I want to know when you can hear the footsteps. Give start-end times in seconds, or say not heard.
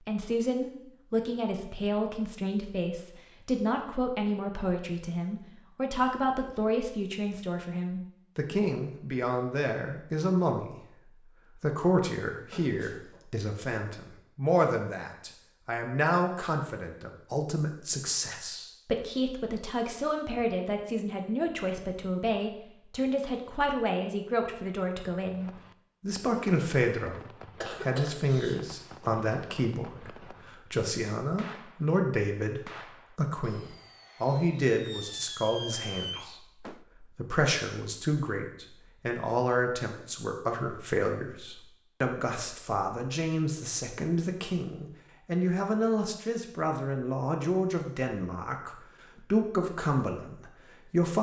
not heard.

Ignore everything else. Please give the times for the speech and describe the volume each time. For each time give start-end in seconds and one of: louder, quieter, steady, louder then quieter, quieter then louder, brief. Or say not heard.
0.0-51.1 steady.